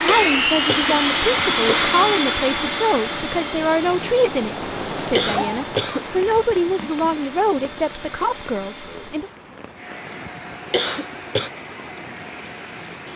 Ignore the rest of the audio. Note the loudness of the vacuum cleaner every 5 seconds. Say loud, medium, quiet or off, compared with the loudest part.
loud, quiet, quiet.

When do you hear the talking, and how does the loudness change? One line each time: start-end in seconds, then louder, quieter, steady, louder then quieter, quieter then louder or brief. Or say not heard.
0.0-9.3 steady.